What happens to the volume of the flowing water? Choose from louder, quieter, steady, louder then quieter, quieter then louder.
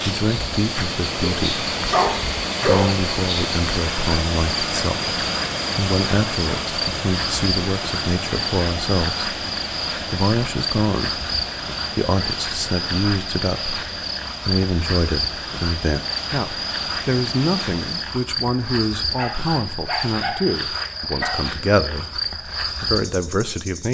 quieter.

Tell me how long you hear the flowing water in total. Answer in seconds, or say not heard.
18 s.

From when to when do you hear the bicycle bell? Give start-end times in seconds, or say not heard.
not heard.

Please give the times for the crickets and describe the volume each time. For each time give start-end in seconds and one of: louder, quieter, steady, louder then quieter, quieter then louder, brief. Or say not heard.
0.0-23.8 steady.